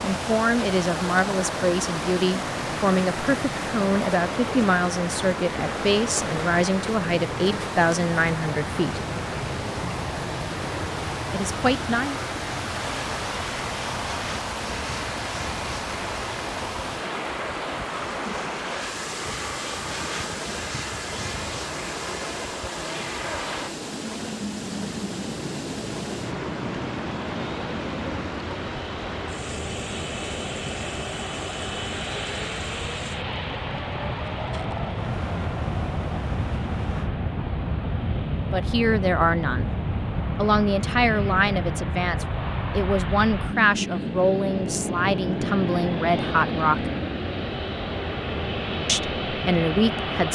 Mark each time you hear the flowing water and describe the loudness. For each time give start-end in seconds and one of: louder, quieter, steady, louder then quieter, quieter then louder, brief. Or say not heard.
0.0-37.1 quieter.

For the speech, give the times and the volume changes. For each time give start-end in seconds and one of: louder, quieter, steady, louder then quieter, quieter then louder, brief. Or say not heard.
0.0-9.1 steady
11.3-12.2 brief
38.5-39.6 brief
40.4-46.9 steady
48.9-50.3 brief.